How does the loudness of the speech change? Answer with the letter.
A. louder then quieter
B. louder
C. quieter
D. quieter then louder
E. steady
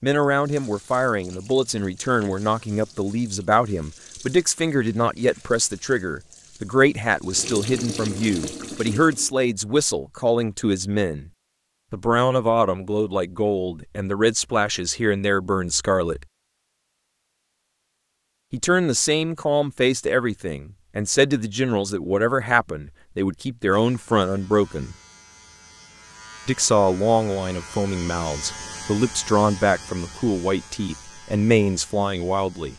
E.